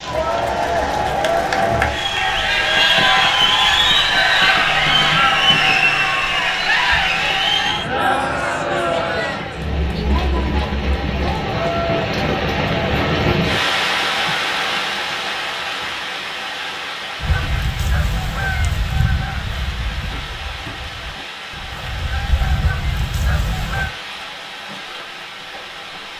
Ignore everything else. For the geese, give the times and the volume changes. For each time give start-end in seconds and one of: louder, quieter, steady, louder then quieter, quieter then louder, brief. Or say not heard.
17.2-23.9 quieter then louder.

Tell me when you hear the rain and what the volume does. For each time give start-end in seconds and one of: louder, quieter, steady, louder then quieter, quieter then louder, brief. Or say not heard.
0.0-26.1 louder then quieter.